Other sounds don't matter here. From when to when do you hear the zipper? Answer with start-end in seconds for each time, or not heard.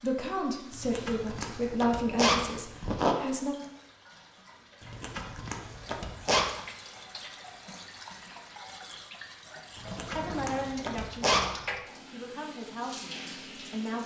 0.7-3.1, 4.8-6.5, 9.8-11.4.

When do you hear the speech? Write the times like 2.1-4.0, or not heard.
0.0-3.5, 10.2-14.0.